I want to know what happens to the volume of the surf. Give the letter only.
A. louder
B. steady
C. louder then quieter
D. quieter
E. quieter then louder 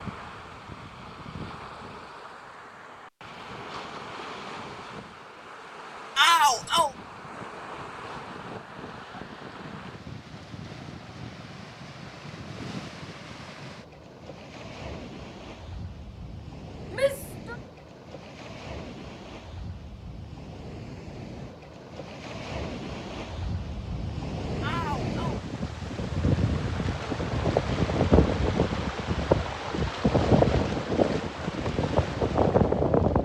A.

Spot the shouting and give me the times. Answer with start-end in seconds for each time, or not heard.
6.2-6.9, 16.9-17.6, 24.6-25.4.